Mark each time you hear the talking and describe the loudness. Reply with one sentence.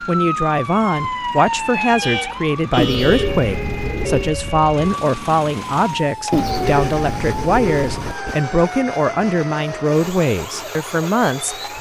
You can hear the talking from 0.0 to 11.7 s, at a steady volume.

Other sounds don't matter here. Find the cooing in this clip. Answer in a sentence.
You can hear the cooing from 2.8 to 4.3 s and from 6.3 to 8.3 s.